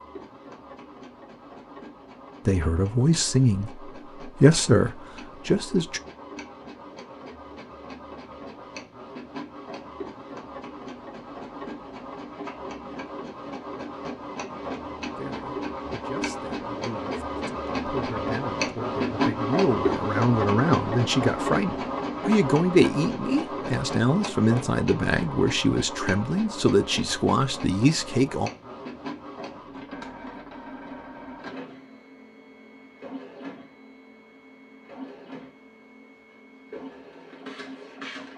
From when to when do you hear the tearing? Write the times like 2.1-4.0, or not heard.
not heard.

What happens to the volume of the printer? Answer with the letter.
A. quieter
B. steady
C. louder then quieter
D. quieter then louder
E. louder
C.